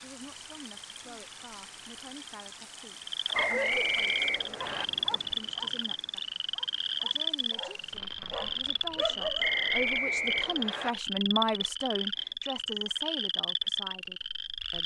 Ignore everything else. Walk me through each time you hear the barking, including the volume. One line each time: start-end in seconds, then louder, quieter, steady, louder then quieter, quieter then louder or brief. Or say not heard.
3.2-9.6 quieter then louder.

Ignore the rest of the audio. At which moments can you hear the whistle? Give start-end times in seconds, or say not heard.
3.3-4.8, 9.4-10.9.